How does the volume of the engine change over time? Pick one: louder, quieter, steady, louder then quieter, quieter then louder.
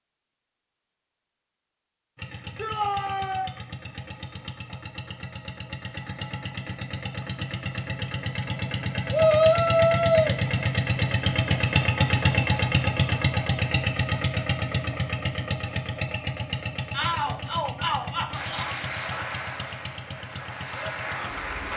louder then quieter.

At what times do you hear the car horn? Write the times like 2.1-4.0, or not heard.
not heard.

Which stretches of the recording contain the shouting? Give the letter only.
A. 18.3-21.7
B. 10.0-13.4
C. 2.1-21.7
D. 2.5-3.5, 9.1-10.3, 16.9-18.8
D.